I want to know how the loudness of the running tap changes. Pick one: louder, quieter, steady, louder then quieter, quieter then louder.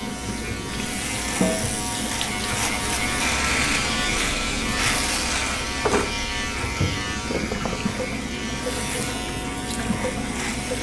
steady.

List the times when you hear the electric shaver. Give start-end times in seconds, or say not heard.
0.0-10.7.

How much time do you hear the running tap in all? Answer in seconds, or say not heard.
11 s.